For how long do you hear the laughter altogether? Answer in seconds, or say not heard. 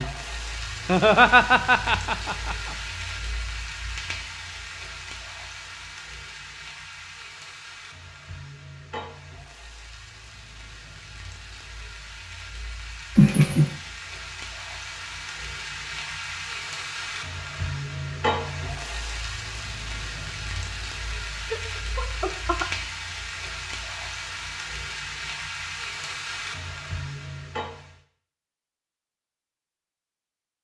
4 s.